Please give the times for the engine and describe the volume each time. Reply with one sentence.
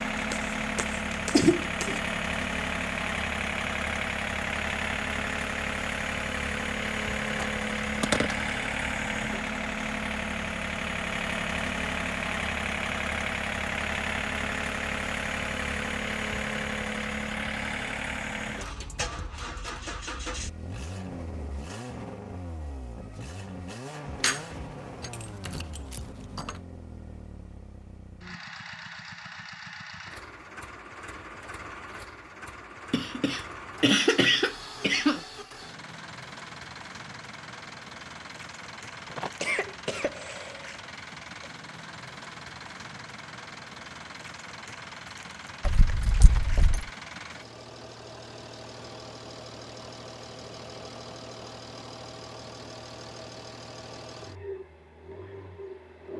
You can hear the engine from 0.0 to 56.1 s, getting quieter.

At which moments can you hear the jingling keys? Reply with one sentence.
You can hear the jingling keys from 7.3 to 8.4 s, from 24.1 to 26.6 s and from 45.6 to 46.9 s.